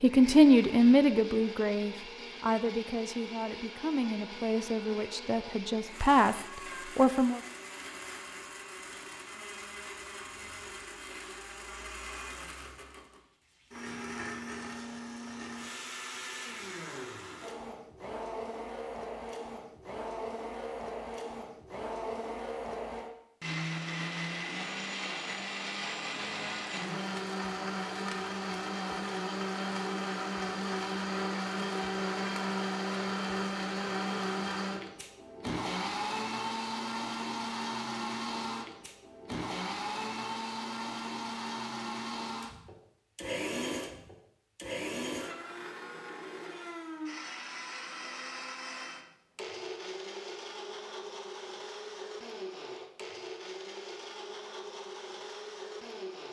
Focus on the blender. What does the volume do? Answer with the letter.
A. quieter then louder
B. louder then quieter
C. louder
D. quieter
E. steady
B.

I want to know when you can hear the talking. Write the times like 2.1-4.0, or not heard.
0.0-7.4.